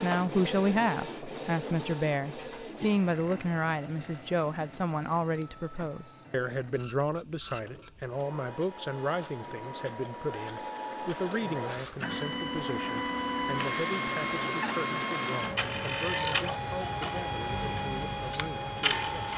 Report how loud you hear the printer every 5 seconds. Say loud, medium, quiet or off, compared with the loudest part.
medium, quiet, loud, loud.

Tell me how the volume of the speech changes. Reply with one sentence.
The volume of the speech goes down.